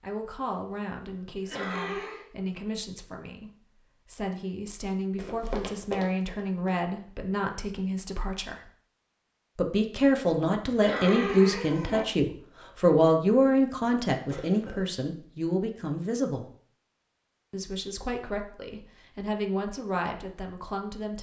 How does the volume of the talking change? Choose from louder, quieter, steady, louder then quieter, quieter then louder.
louder then quieter.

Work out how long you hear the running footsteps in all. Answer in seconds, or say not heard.
2 s.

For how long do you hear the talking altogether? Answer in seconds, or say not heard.
19 s.